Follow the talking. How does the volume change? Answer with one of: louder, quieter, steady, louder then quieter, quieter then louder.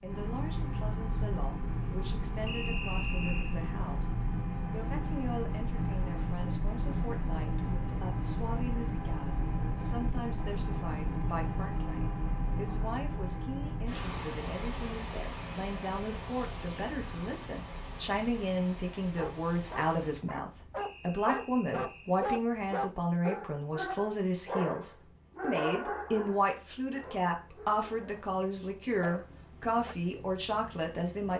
louder.